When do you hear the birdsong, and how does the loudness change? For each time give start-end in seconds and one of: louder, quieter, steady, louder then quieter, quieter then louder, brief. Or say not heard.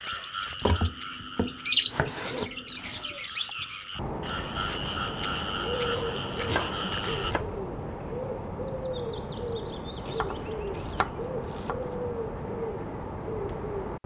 0.0-14.0 quieter.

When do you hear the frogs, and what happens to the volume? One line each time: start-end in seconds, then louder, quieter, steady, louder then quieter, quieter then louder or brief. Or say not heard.
0.0-7.3 quieter then louder.